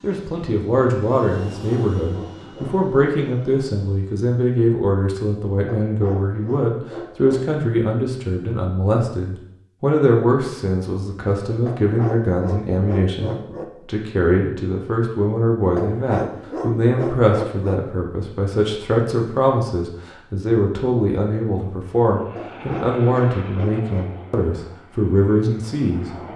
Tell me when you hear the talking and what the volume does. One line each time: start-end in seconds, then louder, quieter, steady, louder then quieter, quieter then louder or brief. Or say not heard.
0.0-26.3 steady.